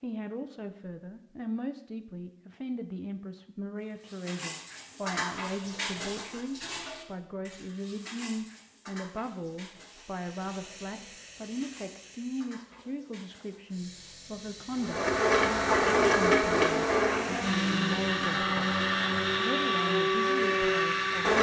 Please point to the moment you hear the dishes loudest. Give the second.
5 s.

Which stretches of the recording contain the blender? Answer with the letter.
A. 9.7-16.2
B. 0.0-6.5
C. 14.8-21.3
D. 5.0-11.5
C.